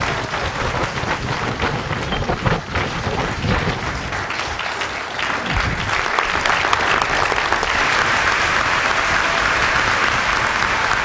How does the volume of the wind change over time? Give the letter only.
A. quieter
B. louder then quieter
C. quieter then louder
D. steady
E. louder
A.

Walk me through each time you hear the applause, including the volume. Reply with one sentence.
The applause can be heard from 0.0 to 11.0 s, getting louder.